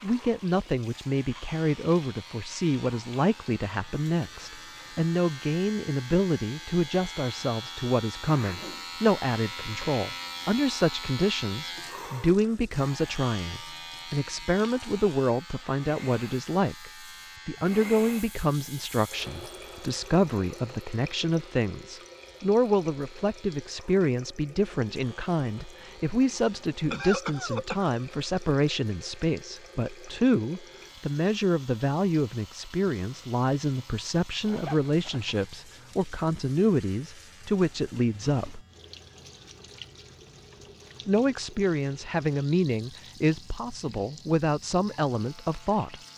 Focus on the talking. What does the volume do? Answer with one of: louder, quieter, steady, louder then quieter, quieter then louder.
steady.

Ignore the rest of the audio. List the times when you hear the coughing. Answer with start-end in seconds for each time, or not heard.
26.2-27.9.